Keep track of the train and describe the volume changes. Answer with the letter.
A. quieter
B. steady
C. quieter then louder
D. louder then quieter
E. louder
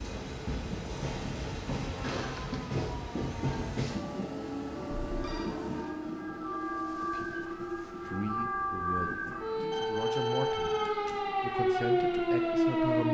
A.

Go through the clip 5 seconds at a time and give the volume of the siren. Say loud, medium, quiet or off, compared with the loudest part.
quiet, medium, loud.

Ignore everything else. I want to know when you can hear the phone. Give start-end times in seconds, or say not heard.
2.0-2.6, 5.0-5.5, 9.7-11.2.